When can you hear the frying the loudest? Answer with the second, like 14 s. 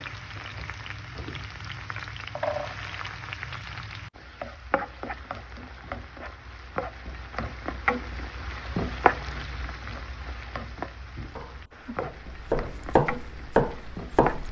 9 s.